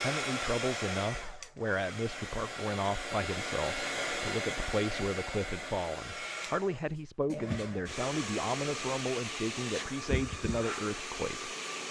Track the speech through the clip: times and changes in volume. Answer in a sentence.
The speech can be heard from 0.0 to 11.6 s, at a steady volume.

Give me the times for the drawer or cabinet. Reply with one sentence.
The drawer or cabinet can't be heard in this clip.